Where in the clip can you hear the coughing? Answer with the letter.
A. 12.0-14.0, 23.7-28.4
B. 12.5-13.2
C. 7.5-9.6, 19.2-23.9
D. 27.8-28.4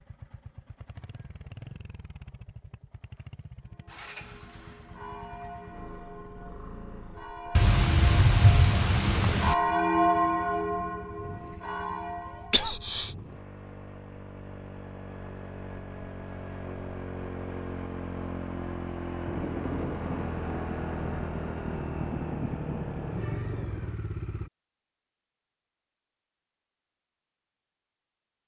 B.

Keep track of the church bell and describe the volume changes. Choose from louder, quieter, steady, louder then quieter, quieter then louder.
louder then quieter.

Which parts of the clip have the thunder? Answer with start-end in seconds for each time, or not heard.
7.5-9.6, 19.2-23.9.